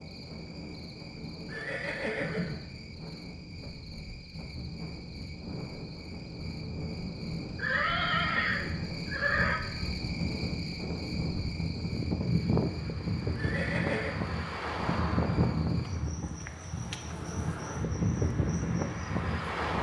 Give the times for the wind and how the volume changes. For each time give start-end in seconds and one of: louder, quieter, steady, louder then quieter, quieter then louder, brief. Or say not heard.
0.0-19.7 louder.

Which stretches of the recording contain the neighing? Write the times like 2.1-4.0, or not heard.
1.4-2.7, 7.5-9.6, 13.3-14.2.